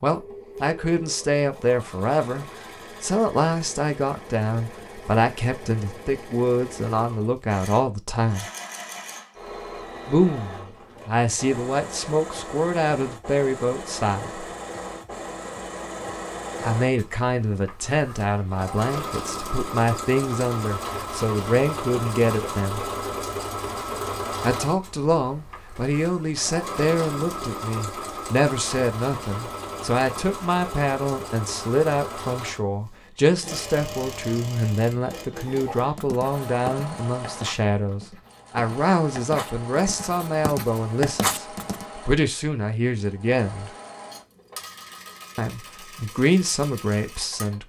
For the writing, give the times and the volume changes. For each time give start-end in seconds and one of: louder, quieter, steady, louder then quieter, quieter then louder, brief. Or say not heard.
35.4-41.9 quieter then louder.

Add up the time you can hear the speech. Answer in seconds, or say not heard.
41 s.